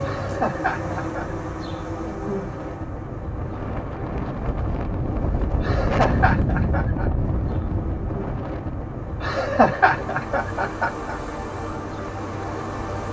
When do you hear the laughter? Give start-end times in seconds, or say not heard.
0.0-1.2, 5.6-7.0, 9.2-11.2.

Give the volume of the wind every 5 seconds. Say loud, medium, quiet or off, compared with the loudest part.
medium, loud, quiet.